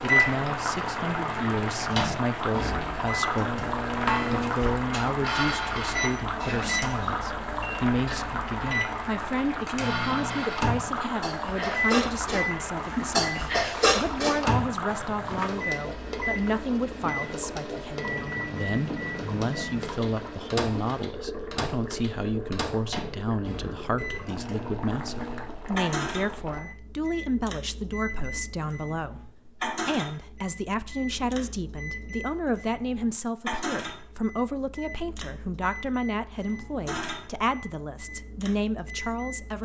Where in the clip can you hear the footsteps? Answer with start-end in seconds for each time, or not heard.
not heard.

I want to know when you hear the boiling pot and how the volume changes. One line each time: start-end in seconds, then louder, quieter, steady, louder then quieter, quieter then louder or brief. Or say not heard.
0.0-26.6 quieter.